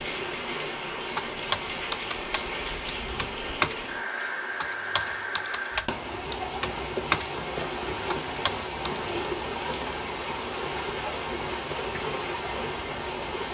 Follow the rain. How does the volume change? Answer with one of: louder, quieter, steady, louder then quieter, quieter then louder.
steady.